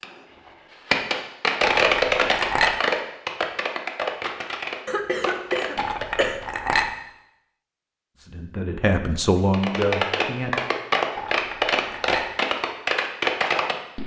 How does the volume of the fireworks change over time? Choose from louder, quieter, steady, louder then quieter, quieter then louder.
quieter then louder.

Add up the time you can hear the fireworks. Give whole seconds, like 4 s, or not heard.
11 s.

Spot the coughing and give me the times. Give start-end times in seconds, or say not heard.
4.8-6.4.